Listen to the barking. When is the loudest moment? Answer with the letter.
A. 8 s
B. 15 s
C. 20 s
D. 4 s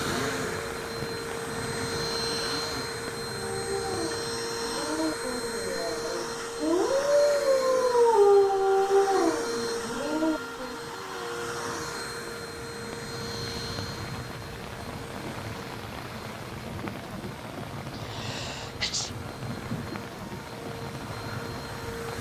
A.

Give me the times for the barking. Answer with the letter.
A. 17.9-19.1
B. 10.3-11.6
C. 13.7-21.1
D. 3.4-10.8
D.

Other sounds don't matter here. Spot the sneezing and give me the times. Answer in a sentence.
You can hear the sneezing from 17.9 to 19.1 s.